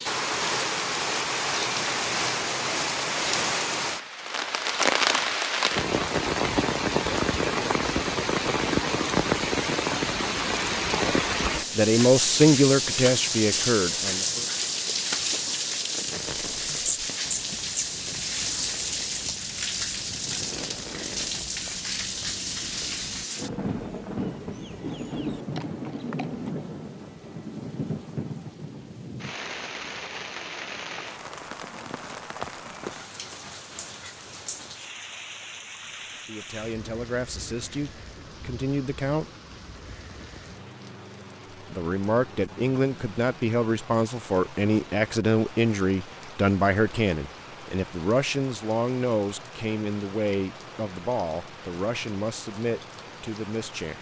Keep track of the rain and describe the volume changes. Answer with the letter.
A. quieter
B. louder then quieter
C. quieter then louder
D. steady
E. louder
A.